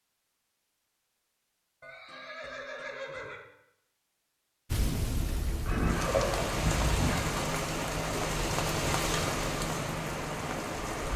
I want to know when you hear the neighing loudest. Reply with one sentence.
The volume of the neighing peaks at 6 seconds.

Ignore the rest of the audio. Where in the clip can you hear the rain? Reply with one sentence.
The rain can be heard from 4.7 to 11.1 s.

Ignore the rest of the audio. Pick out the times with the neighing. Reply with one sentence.
You can hear the neighing from 1.8 to 3.5 s and from 5.7 to 7.3 s.